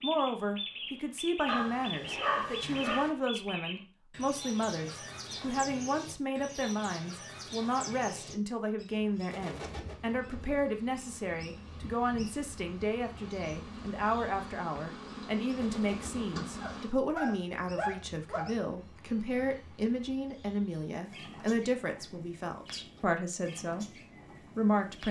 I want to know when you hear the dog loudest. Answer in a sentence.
The volume of the dog peaks at 2 seconds.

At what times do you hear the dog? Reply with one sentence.
The dog can be heard from 1.4 to 3.1 s and from 16.6 to 18.6 s.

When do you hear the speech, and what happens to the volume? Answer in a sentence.
The speech can be heard from 0.0 to 25.0 s, at a steady volume.